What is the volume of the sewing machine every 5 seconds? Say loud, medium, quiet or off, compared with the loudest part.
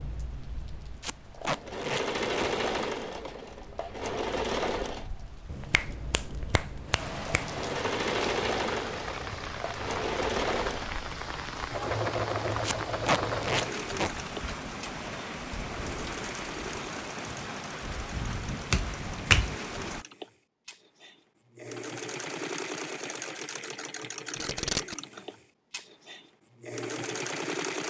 loud, loud, loud, medium, medium, loud.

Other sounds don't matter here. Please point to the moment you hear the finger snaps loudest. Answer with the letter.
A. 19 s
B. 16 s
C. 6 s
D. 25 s
A.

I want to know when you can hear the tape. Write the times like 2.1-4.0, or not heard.
1.0-2.5, 12.6-14.1, 24.4-24.9.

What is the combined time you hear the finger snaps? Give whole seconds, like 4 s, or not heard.
3 s.